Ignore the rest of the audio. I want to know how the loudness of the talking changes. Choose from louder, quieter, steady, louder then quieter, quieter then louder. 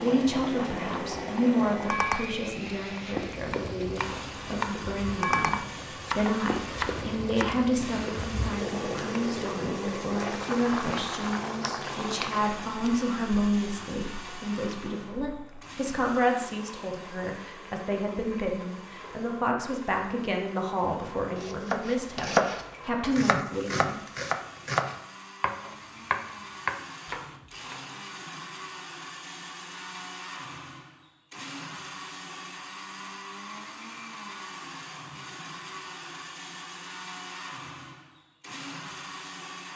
steady.